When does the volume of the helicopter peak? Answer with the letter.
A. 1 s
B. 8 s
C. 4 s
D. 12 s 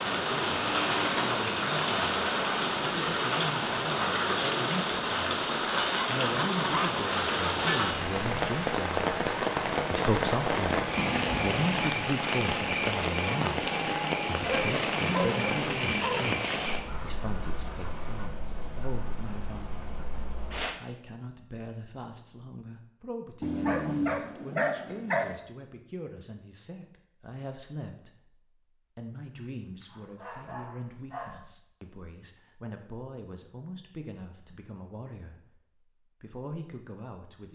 A.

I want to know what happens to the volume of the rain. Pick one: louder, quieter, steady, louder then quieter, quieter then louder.
quieter.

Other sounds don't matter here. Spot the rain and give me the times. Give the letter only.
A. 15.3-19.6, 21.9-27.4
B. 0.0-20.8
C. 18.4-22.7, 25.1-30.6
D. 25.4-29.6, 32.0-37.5
B.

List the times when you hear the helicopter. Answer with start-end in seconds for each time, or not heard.
0.0-4.3, 6.7-12.2.